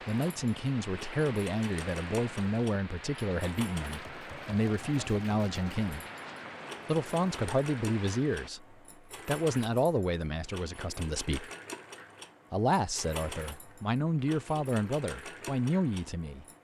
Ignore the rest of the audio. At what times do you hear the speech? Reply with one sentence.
You can hear the speech from 0.1 to 6.0 s, from 6.8 to 11.5 s and from 12.5 to 16.4 s.